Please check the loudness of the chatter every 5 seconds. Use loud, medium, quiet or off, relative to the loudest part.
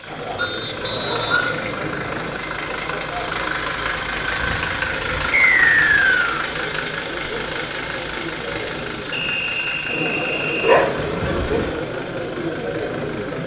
medium, medium, loud.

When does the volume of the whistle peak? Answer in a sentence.
The volume of the whistle peaks at 6 seconds.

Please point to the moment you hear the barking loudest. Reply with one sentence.
The volume of the barking peaks at 11 seconds.